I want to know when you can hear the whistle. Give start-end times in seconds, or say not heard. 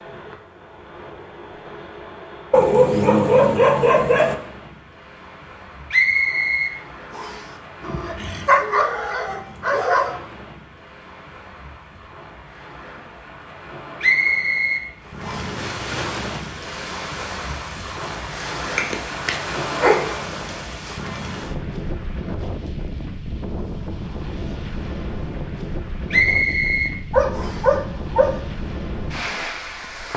5.9-7.5, 14.0-15.6, 26.1-27.6.